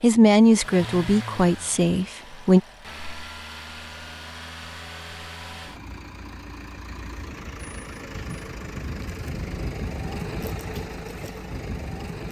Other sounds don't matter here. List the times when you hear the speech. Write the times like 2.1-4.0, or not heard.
0.0-2.6.